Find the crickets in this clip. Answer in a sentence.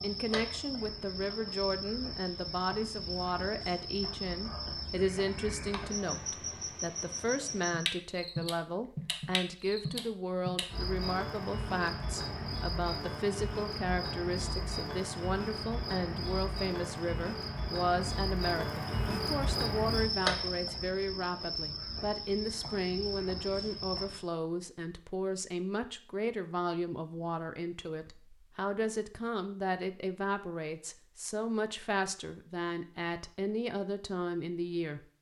You can hear the crickets from 0.0 to 24.2 s.